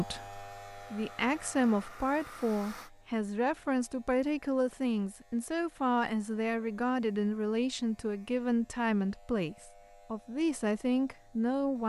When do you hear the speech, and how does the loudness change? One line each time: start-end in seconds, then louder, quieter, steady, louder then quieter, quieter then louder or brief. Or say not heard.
0.0-11.8 steady.